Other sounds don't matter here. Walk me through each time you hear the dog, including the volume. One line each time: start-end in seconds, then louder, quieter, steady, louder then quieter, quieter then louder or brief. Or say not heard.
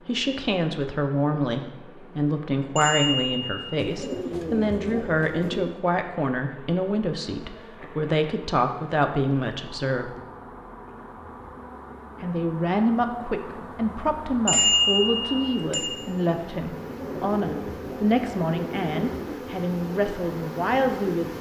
not heard.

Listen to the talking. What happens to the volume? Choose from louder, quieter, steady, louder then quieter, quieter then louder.
steady.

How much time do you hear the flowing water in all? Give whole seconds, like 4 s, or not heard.
not heard.